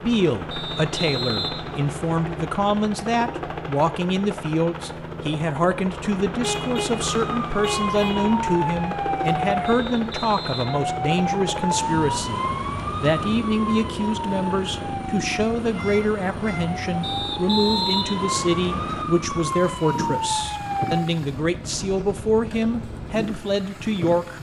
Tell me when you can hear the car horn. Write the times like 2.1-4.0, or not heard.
6.4-8.3, 15.7-16.6.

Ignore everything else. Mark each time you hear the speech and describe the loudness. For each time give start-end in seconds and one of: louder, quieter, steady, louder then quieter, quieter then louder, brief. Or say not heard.
0.0-24.3 steady.